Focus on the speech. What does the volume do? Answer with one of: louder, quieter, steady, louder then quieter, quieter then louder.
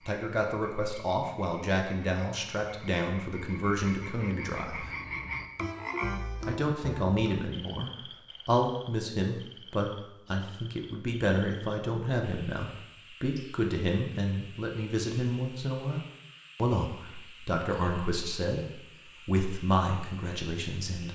steady.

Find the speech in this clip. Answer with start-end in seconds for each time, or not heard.
0.1-4.9, 6.5-21.0.